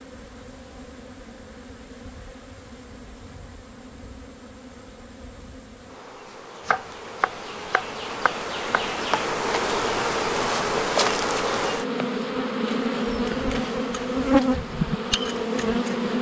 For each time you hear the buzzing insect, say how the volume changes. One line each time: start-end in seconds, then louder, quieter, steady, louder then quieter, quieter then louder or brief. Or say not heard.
0.0-16.1 louder.